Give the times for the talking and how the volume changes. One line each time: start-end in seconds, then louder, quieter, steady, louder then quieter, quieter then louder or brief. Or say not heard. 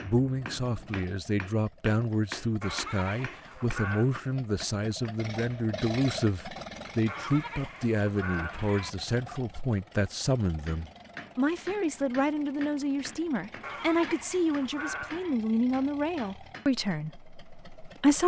0.0-18.2 steady.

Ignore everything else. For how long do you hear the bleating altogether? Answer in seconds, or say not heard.
5 s.